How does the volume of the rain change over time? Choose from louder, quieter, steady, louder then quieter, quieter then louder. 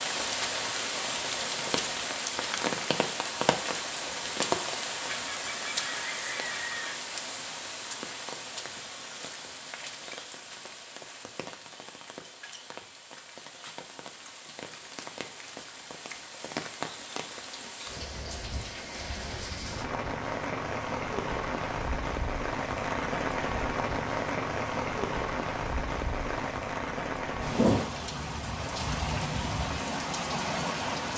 quieter then louder.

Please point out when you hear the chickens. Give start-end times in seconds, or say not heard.
5.2-7.0.